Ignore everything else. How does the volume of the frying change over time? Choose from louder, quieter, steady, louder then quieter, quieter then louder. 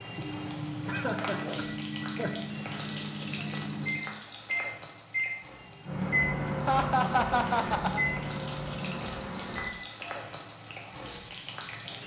quieter then louder.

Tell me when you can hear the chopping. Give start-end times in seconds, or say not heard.
not heard.